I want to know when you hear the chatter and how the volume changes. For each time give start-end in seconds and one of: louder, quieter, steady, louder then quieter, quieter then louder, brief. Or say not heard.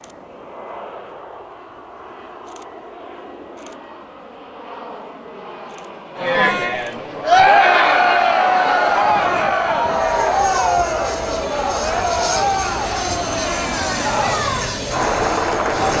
6.2-15.9 quieter.